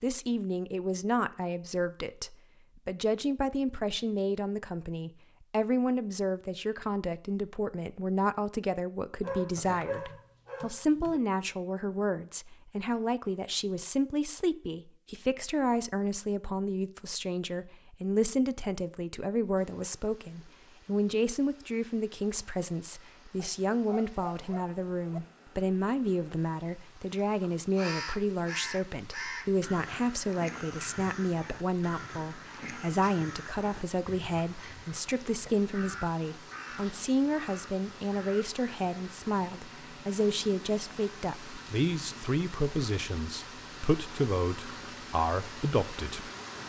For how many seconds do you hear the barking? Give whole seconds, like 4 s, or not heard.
4 s.